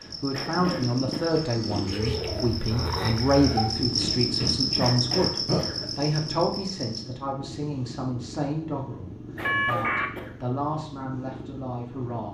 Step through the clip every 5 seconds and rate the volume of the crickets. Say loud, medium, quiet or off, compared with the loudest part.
loud, loud, off.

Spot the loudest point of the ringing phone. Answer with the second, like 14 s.
10 s.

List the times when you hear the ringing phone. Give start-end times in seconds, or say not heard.
1.2-2.0, 9.4-10.1.